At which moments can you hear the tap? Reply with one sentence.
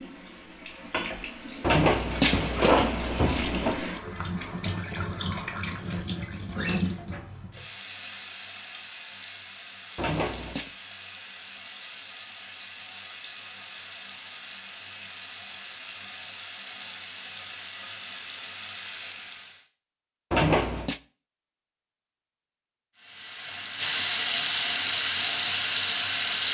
You can hear the tap from 0.0 to 19.6 s and from 22.9 to 26.4 s.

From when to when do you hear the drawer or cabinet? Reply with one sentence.
You can hear the drawer or cabinet from 1.6 to 3.8 s, from 9.9 to 10.7 s and from 20.3 to 21.0 s.